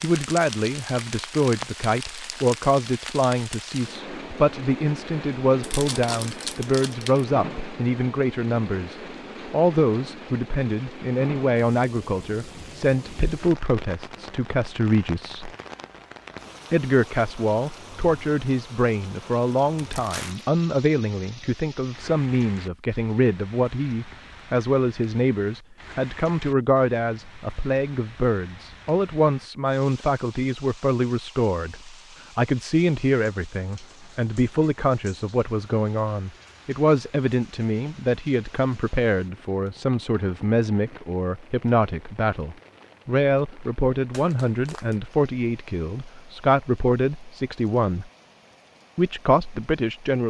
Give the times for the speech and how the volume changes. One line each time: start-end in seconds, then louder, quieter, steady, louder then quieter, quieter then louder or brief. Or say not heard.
0.0-15.5 steady
16.7-48.1 steady
49.0-50.2 brief.